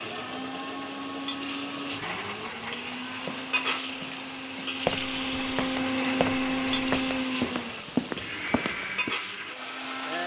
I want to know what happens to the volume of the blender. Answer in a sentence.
The loudness of the blender goes up, then down.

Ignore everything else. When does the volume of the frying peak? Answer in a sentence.
The loudest moment of the frying is at 5 seconds.